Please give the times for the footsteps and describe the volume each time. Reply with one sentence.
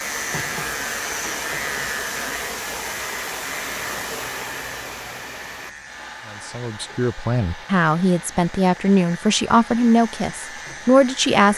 You can't hear the footsteps here.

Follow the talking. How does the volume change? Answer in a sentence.
The loudness of the talking goes up.